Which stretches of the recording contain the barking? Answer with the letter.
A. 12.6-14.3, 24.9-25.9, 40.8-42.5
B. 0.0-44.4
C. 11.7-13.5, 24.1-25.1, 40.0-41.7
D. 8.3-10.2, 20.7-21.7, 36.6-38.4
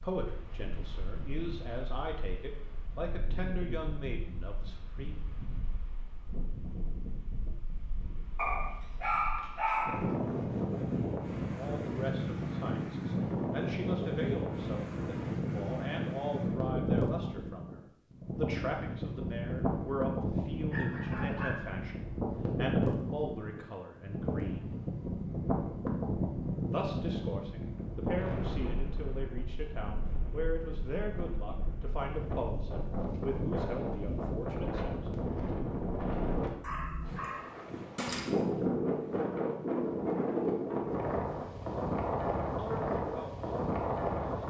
D.